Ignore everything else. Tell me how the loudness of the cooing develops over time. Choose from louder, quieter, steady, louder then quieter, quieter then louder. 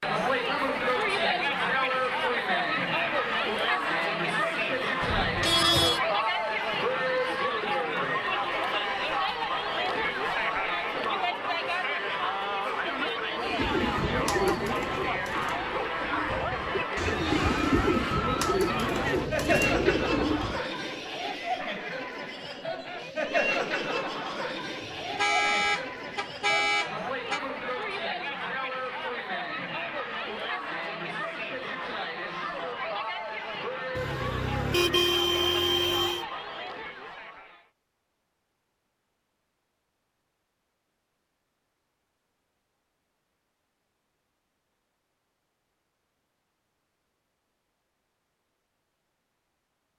quieter then louder.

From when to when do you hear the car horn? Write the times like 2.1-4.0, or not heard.
5.0-6.0, 24.8-27.4, 34.0-36.2.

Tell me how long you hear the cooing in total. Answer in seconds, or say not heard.
7 s.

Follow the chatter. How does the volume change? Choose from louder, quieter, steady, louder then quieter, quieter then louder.
quieter.